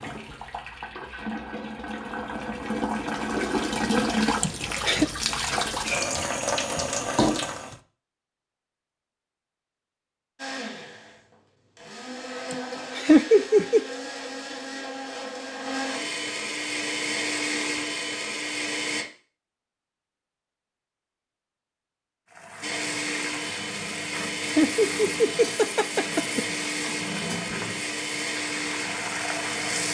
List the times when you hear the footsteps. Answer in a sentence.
You can't hear the footsteps here.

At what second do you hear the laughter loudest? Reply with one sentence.
The volume of the laughter peaks at 13 seconds.